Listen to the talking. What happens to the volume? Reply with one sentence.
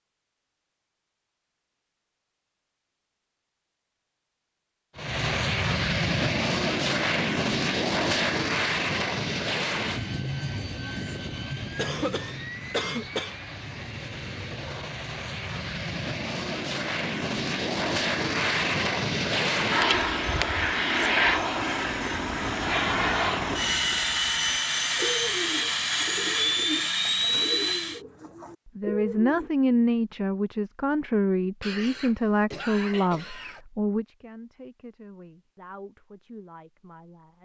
The volume of the talking goes down.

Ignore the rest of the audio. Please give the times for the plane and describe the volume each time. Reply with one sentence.
The plane can be heard from 5.0 to 28.0 s, getting quieter then louder.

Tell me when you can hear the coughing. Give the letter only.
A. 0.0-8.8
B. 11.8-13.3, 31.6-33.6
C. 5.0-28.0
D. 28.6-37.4
B.